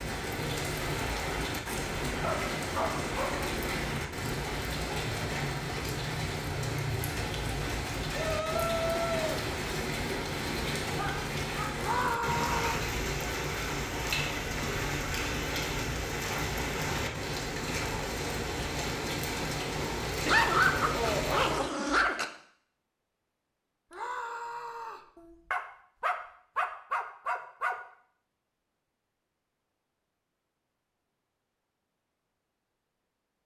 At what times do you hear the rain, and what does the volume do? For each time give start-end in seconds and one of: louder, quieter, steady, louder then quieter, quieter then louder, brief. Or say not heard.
0.0-21.6 steady.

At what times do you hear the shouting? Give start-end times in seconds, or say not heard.
8.1-9.4, 11.8-12.8, 23.9-25.1.